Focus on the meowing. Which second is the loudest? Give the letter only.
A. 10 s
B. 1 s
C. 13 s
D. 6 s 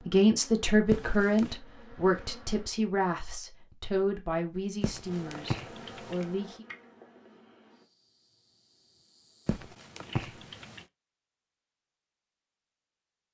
B.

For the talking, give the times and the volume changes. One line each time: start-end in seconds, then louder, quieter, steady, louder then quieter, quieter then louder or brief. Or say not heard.
0.1-6.7 quieter.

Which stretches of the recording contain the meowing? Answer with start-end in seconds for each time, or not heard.
0.9-1.6, 4.8-6.2, 9.4-10.8.